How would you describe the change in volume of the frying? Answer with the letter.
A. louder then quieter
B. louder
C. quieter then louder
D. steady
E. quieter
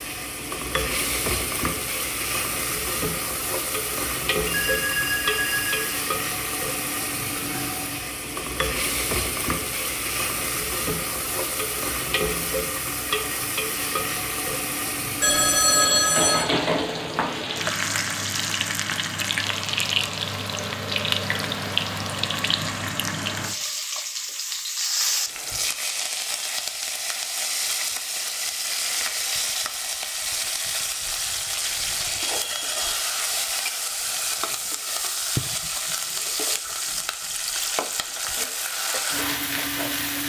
D.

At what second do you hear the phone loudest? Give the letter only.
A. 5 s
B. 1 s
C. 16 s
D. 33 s
C.